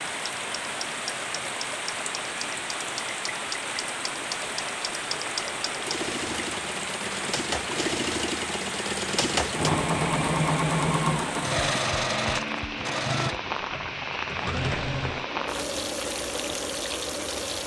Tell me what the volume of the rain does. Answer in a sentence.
The volume of the rain stays about the same.